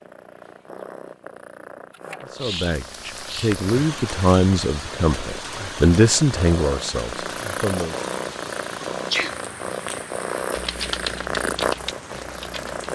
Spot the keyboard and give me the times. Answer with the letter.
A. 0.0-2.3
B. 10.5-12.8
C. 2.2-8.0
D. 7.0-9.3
B.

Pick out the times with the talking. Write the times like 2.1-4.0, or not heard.
2.2-8.0.